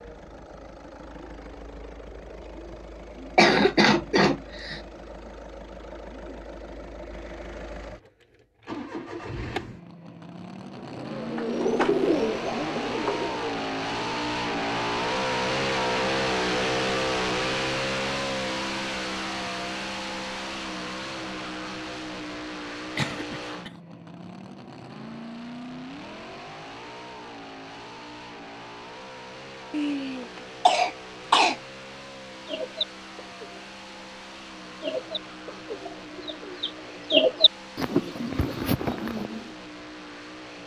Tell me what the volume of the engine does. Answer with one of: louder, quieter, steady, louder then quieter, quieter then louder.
louder then quieter.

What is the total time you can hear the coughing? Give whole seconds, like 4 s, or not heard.
4 s.